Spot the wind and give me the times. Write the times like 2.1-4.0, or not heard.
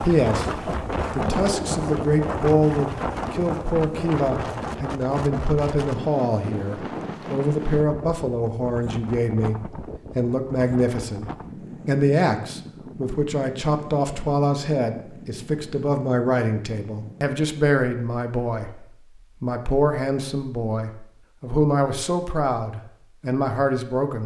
0.0-17.4.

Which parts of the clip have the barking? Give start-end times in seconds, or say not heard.
not heard.